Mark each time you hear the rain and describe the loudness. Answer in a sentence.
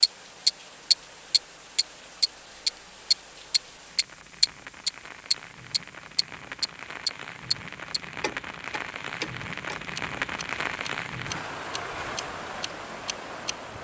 You can hear the rain from 0.0 to 13.7 s, getting louder.